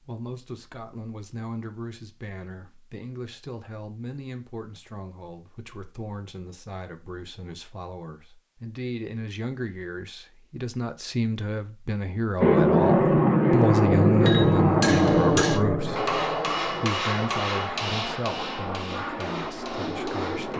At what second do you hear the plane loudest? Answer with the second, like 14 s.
13 s.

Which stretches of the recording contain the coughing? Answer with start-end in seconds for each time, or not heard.
not heard.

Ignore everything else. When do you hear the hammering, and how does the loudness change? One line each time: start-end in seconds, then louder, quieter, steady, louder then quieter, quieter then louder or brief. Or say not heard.
14.2-20.5 quieter.